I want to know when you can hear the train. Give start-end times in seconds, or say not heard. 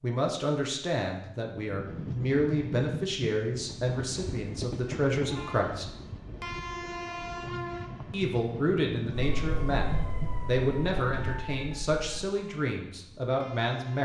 1.5-14.0.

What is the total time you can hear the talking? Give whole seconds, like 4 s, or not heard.
12 s.